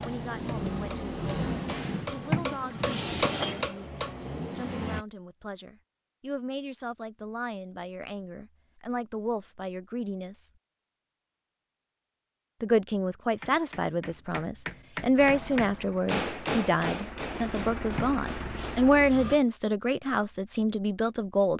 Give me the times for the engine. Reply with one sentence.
The engine can be heard from 0.0 to 5.0 s and from 15.2 to 19.4 s.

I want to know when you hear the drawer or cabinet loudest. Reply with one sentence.
The volume of the drawer or cabinet peaks at 2 seconds.